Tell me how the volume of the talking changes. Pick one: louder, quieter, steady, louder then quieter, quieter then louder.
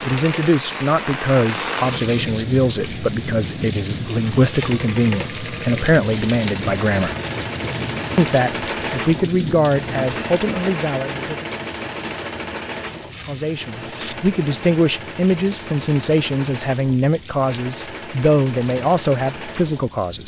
steady.